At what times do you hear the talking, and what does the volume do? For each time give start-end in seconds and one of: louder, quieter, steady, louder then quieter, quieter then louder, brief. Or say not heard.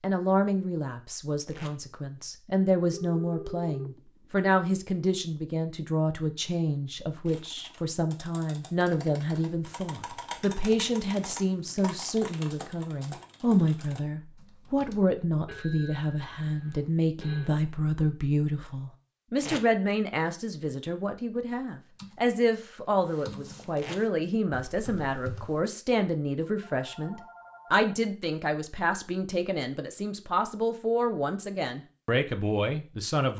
0.0-33.3 steady.